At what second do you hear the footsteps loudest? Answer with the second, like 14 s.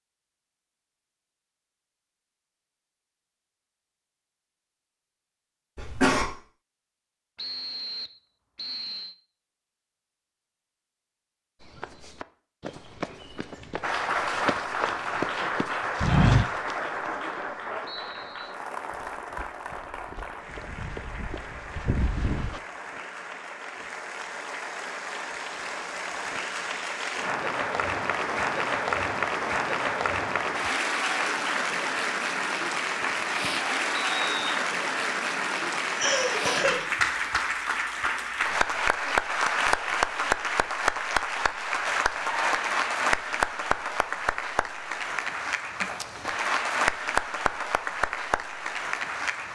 16 s.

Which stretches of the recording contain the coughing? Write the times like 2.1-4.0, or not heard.
5.8-6.2, 36.0-36.9.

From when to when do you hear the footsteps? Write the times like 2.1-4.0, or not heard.
11.8-22.6.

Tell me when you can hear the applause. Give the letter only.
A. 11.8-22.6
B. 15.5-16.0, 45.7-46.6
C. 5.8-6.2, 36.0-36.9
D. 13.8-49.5
D.